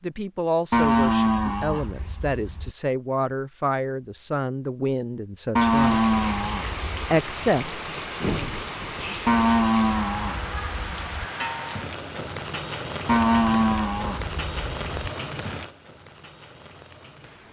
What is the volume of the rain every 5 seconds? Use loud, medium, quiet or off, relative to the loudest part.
off, loud, loud, medium.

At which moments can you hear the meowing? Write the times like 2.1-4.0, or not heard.
not heard.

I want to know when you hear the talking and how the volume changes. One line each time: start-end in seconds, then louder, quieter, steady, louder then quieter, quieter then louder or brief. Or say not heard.
0.0-6.0 steady
7.0-8.4 brief.